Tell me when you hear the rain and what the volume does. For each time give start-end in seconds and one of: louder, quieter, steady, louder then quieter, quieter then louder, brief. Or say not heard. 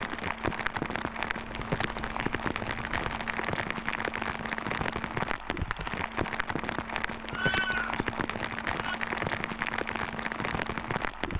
0.0-11.3 steady.